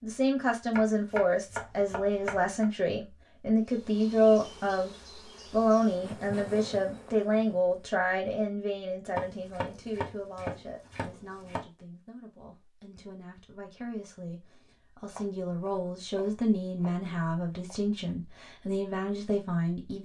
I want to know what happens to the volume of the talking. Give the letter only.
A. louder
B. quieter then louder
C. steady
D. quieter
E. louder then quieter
B.